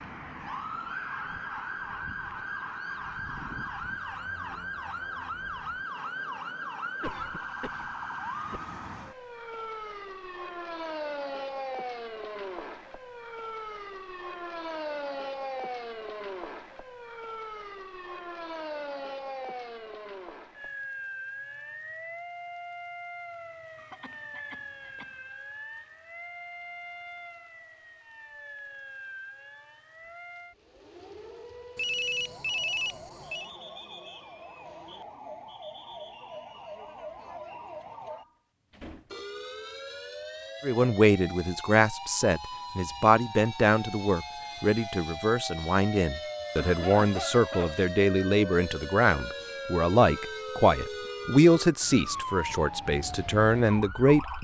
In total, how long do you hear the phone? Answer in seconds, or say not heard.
2 s.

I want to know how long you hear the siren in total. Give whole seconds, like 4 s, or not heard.
54 s.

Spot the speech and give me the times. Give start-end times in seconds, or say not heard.
40.6-54.3.